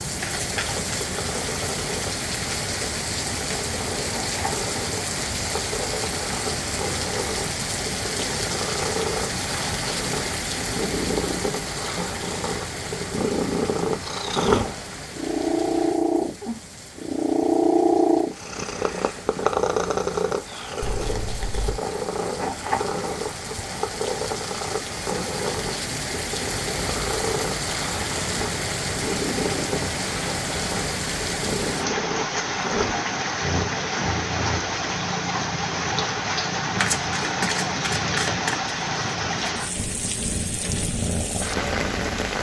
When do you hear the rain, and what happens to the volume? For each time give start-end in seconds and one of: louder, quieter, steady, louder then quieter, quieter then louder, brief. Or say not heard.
0.0-42.3 quieter then louder.